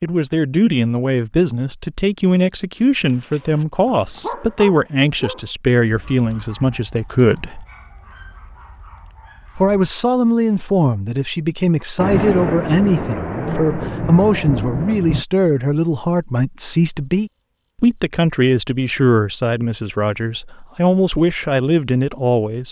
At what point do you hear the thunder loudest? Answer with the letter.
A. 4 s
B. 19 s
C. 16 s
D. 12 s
D.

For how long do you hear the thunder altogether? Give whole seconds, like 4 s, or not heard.
3 s.